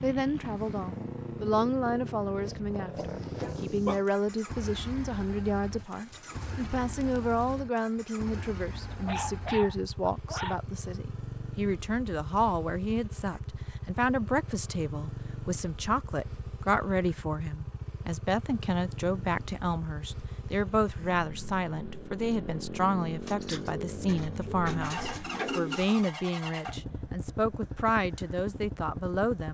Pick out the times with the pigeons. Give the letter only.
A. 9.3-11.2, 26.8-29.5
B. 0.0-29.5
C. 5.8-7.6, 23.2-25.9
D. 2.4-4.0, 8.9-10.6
C.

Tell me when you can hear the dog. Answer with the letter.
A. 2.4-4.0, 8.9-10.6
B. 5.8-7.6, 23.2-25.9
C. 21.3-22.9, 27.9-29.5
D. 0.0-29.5
A.